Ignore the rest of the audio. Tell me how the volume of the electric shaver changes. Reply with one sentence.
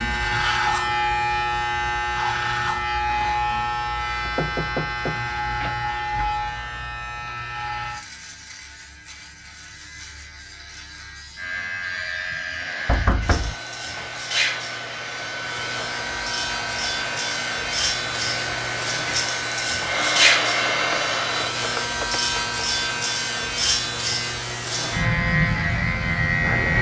The volume of the electric shaver goes down, then up.